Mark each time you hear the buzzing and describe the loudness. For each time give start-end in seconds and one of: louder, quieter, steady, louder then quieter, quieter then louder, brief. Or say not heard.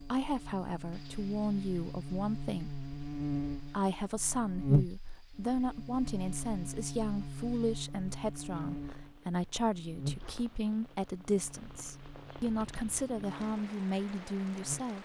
0.0-14.9 louder then quieter.